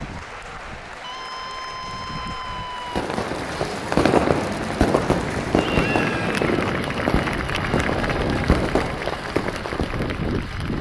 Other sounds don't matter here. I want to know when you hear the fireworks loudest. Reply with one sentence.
The loudest moment of the fireworks is at 4 seconds.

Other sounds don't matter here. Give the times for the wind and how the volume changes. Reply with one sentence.
The wind can be heard from 0.0 to 10.7 s, getting louder.